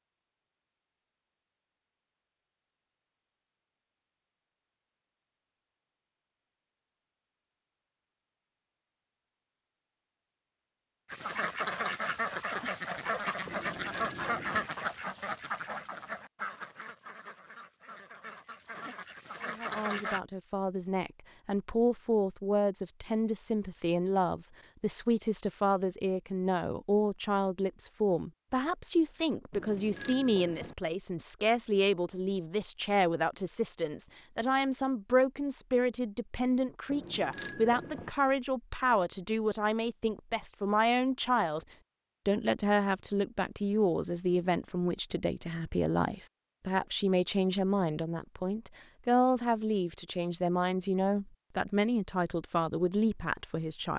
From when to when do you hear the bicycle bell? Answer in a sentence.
The bicycle bell can be heard from 13.4 to 14.7 s, from 29.5 to 30.8 s and from 36.9 to 38.1 s.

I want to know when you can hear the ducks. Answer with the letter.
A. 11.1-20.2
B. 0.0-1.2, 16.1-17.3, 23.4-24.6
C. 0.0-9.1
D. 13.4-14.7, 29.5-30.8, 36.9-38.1
A.